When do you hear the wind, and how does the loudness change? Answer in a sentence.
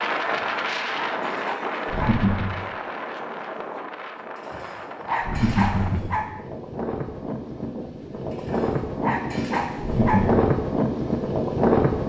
The wind can be heard from 0.0 to 12.0 s, getting quieter then louder.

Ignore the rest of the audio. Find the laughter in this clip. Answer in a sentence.
You can hear the laughter from 1.9 to 2.5 s, from 5.2 to 6.2 s and from 9.8 to 10.4 s.